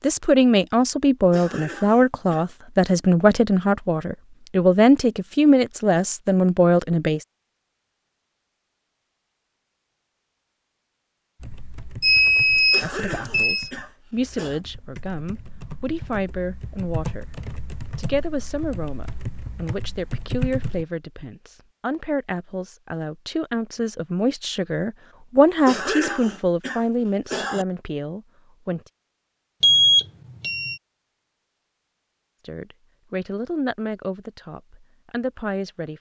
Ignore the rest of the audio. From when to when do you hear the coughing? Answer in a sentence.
The coughing can be heard from 1.3 to 2.5 s, from 12.7 to 14.6 s and from 25.6 to 27.6 s.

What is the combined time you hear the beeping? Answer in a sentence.
You can hear the beeping for 3 seconds altogether.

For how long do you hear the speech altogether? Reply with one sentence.
The speech can be heard for 27 seconds in total.